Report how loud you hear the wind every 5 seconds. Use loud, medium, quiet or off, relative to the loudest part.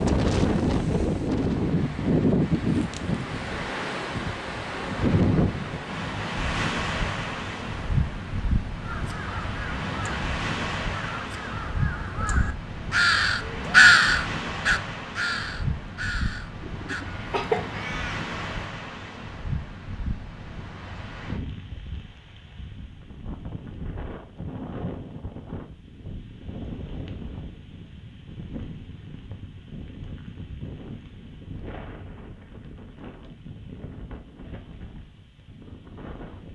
loud, loud, medium, medium, quiet, quiet, quiet, quiet.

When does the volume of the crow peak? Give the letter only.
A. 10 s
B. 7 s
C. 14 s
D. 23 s
C.